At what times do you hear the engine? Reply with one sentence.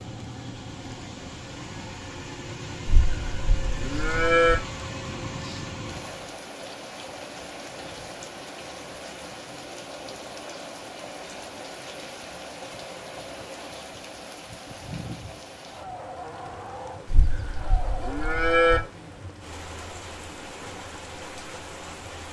The engine can be heard from 0.0 to 6.5 s.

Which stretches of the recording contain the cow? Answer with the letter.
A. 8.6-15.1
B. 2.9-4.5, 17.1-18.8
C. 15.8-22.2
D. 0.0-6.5
B.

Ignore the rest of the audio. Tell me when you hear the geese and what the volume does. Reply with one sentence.
You can't hear the geese here.